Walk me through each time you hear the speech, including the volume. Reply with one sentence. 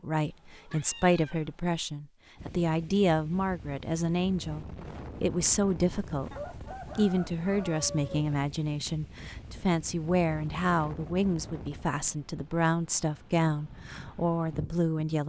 The speech can be heard from 0.0 to 15.2 s, at a steady volume.